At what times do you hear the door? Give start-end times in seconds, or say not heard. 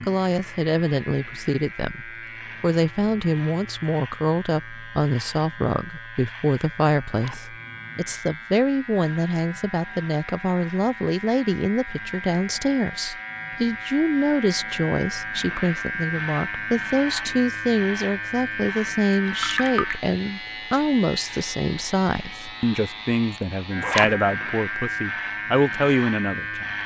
not heard.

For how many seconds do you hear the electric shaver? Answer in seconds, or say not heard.
27 s.